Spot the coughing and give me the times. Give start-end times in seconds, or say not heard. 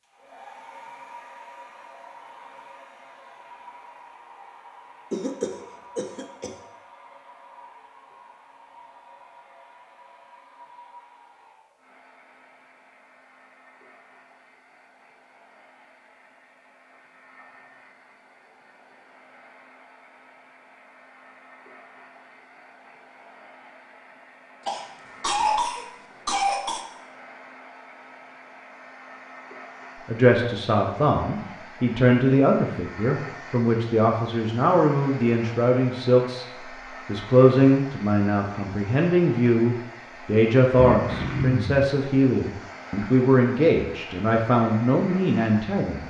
5.1-6.5, 24.6-26.9, 40.8-41.9.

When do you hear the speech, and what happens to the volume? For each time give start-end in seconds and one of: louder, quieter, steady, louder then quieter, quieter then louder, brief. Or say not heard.
30.1-46.0 steady.